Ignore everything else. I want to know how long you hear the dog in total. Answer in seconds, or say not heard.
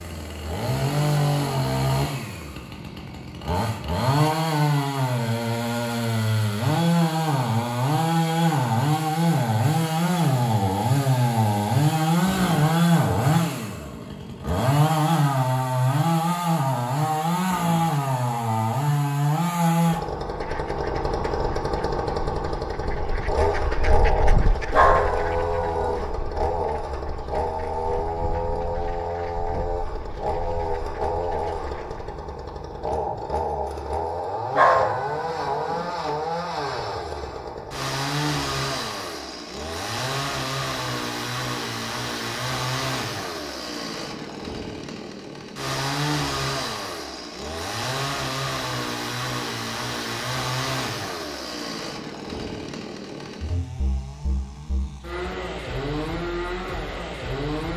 3 s.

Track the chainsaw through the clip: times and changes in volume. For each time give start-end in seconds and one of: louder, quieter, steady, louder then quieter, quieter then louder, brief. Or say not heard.
0.0-57.7 quieter.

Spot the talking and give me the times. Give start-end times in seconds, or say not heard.
not heard.